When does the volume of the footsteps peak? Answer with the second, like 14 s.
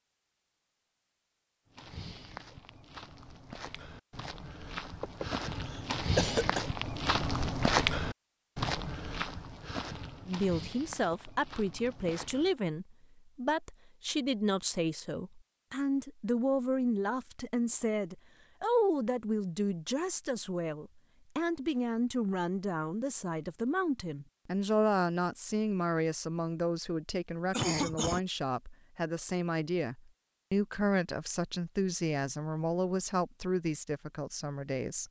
8 s.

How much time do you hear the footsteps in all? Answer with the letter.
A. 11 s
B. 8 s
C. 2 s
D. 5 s
A.